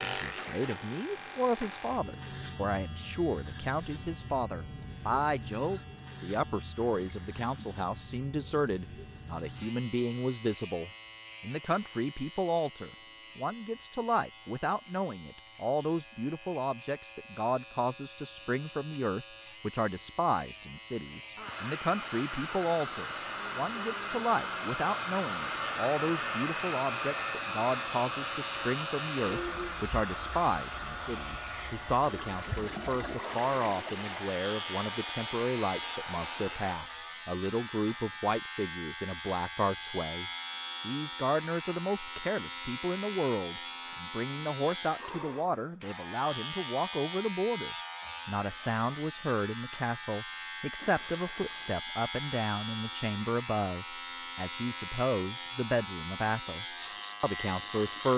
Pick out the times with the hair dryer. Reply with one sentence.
You can hear the hair dryer from 21.1 to 36.8 s.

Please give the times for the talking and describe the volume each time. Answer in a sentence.
You can hear the talking from 0.0 to 58.1 s, at a steady volume.